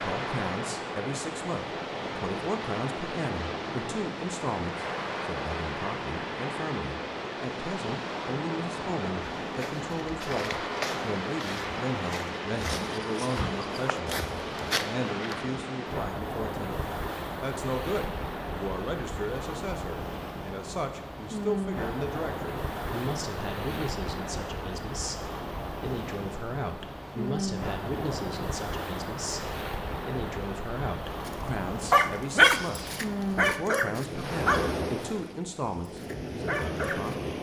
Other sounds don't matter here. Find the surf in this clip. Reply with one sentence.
The surf can be heard from 0.0 to 37.3 s.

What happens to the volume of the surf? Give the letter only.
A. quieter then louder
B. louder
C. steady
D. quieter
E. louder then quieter
C.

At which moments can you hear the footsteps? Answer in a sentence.
You can hear the footsteps from 9.4 to 15.6 s.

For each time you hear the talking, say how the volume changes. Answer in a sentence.
You can hear the talking from 0.0 to 37.3 s, at a steady volume.